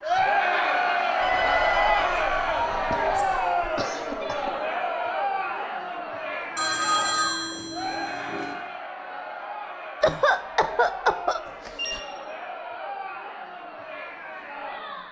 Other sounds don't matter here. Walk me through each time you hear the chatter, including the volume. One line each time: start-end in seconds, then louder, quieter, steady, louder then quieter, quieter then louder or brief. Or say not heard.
0.0-15.0 quieter.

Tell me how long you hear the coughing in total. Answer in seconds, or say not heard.
4 s.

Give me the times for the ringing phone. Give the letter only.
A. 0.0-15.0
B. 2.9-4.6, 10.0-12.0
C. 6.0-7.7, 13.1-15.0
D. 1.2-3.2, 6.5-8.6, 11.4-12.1
D.